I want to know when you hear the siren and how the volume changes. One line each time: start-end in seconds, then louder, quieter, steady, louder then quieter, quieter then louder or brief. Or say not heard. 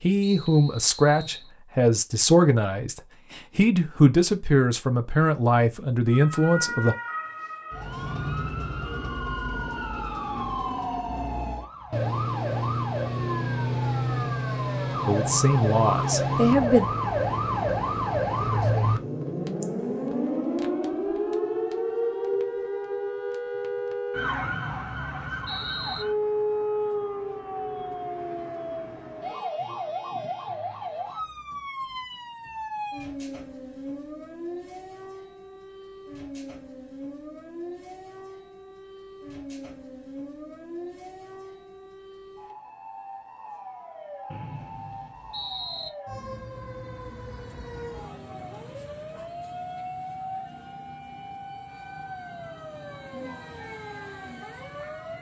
6.0-55.1 quieter.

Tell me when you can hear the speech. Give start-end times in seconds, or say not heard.
0.0-7.0, 15.1-16.9.